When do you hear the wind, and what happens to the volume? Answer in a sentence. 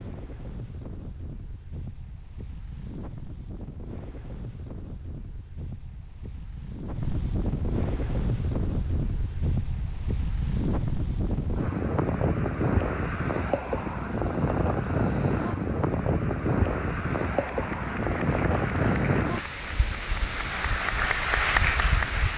The wind can be heard from 0.0 to 22.3 s, getting louder.